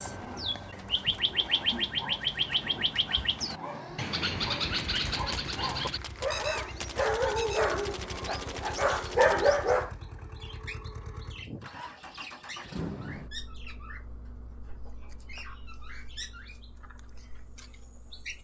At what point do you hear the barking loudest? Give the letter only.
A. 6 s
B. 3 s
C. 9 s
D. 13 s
C.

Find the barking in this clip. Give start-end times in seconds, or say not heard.
1.7-9.9.